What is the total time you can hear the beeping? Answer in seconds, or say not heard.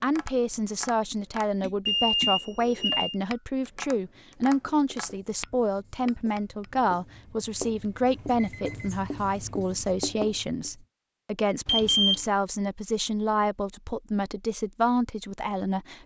3 s.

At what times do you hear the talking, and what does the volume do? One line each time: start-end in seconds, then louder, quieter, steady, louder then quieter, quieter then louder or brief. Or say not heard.
0.0-16.0 steady.